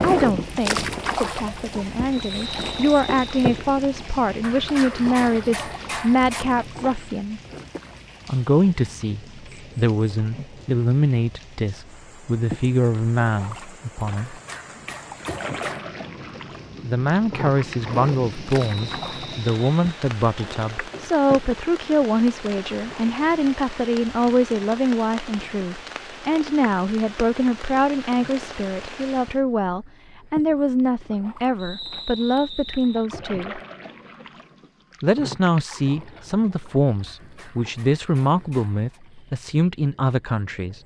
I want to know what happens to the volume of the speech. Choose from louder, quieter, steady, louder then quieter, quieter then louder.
steady.